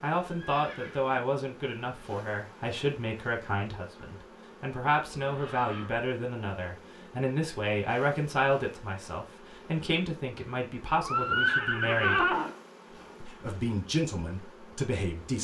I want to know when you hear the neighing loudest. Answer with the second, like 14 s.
12 s.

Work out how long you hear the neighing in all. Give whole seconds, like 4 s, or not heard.
3 s.